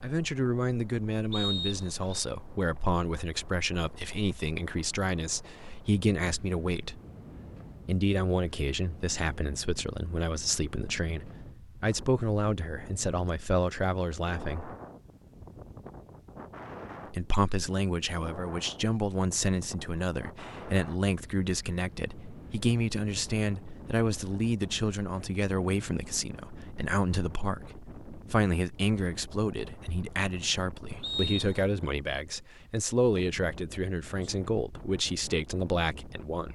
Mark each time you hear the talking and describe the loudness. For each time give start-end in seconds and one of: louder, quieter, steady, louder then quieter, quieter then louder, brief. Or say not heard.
0.0-7.0 steady
7.8-14.8 steady
17.1-36.4 steady.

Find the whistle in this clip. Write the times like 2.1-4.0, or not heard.
1.3-2.2, 31.0-31.6.